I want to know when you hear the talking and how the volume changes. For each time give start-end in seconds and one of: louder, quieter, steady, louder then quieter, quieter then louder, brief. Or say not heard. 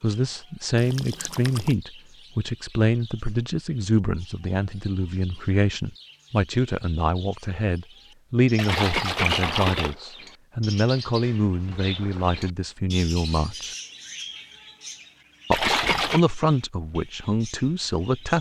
0.0-13.8 steady
15.5-18.3 brief.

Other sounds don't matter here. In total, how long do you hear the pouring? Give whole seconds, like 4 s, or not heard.
3 s.